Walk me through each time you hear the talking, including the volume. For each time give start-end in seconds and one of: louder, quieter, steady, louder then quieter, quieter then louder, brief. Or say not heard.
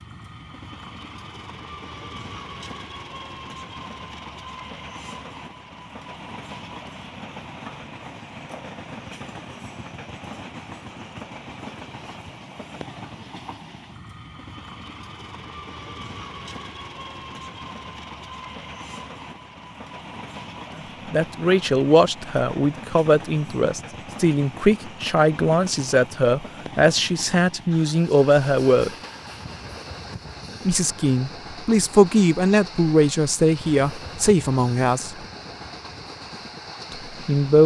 20.8-28.9 steady
30.6-35.1 steady
36.9-37.6 brief.